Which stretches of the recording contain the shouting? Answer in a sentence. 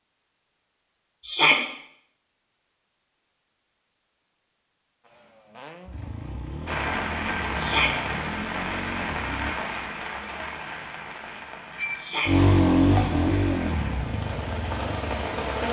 The shouting can be heard from 1.2 to 1.7 s, from 7.5 to 8.0 s and from 11.9 to 12.4 s.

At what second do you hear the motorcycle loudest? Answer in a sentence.
The loudest moment of the motorcycle is at 13 seconds.